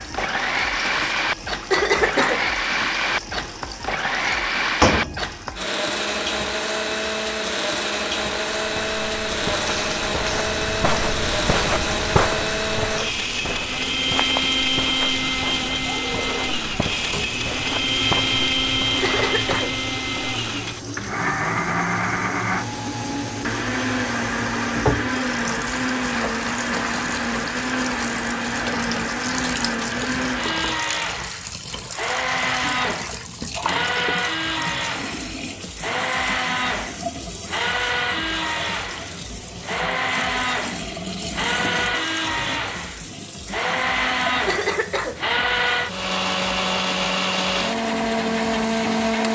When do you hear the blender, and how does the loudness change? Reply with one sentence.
The blender can be heard from 0.0 to 49.3 s, at a steady volume.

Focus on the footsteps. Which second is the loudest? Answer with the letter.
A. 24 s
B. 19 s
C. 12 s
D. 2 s
C.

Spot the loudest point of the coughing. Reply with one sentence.
The loudest moment of the coughing is at 2 seconds.